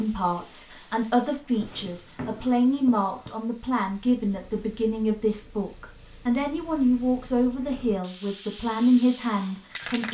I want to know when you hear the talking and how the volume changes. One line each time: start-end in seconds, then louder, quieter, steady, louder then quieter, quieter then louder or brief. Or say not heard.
0.0-10.0 steady.